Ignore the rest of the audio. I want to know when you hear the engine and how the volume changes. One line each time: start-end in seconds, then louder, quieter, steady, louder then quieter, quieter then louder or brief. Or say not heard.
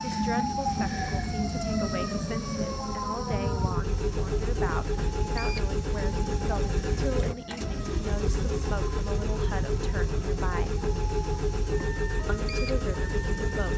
0.2-13.7 louder.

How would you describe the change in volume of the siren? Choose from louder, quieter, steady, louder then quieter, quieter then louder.
quieter.